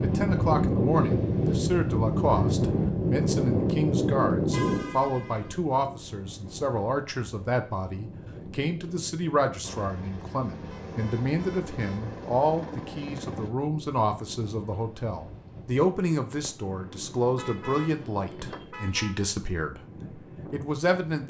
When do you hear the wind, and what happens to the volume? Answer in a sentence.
The wind can be heard from 0.0 to 21.2 s, getting quieter.